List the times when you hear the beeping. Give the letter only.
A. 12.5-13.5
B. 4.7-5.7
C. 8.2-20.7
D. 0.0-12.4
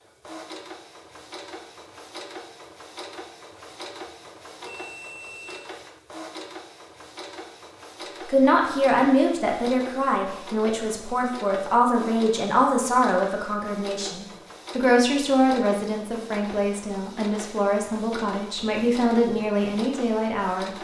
B.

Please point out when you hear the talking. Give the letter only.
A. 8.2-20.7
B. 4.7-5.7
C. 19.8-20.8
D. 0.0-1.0
A.